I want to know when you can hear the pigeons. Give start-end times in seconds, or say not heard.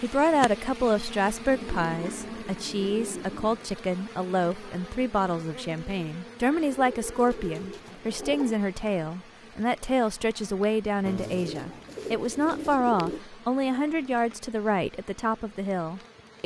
1.5-3.6, 6.7-8.6, 11.1-13.2.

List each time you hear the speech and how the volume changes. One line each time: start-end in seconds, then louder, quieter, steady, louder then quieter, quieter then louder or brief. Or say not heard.
0.0-16.4 steady.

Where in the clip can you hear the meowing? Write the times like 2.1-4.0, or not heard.
not heard.